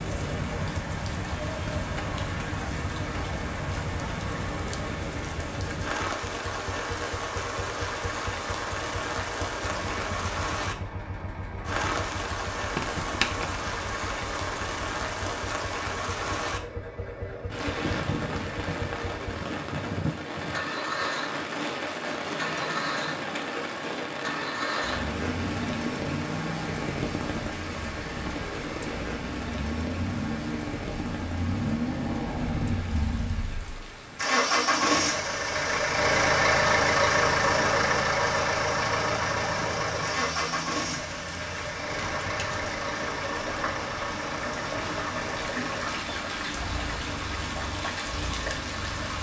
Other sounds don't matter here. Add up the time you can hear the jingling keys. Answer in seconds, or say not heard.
3 s.